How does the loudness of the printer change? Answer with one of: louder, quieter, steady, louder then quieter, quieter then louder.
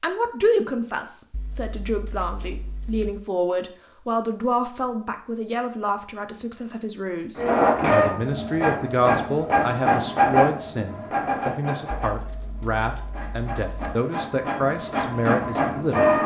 quieter then louder.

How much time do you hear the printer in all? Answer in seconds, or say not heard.
9 s.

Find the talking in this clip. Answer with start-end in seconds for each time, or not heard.
0.0-16.1.